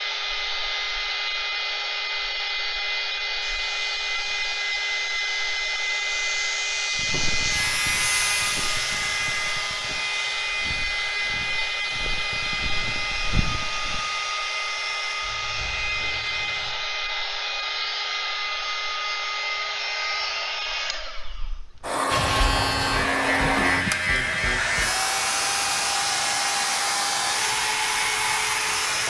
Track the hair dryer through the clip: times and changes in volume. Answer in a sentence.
The hair dryer can be heard from 0.0 to 29.0 s, at a steady volume.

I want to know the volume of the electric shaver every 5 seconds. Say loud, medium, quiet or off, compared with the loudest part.
quiet, medium, quiet, quiet, loud, loud.